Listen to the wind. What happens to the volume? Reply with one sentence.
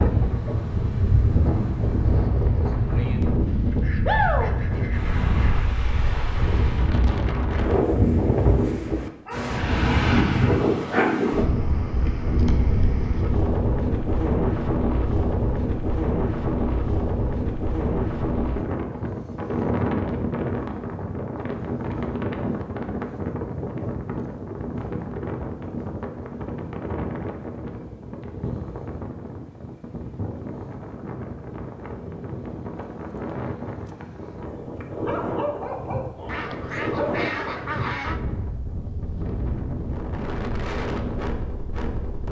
The volume of the wind goes down.